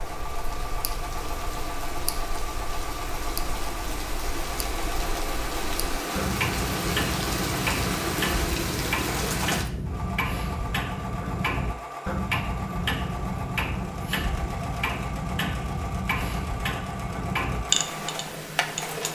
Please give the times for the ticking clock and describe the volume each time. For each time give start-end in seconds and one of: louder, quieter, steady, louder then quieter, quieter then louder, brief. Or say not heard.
0.0-19.1 louder.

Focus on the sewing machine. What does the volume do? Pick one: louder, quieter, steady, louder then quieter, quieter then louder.
steady.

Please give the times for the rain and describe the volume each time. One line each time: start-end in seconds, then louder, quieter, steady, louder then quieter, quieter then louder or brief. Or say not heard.
0.0-9.7 louder.